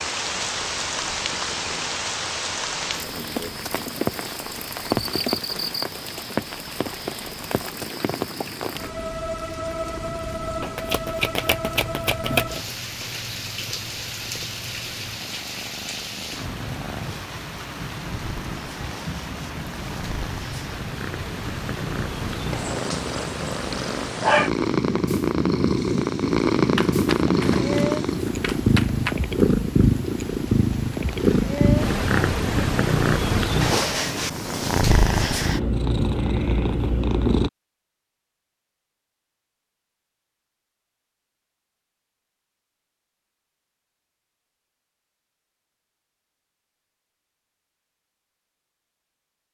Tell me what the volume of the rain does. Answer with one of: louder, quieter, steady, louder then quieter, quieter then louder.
quieter.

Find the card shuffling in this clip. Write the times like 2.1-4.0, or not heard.
10.6-12.6, 26.8-29.1.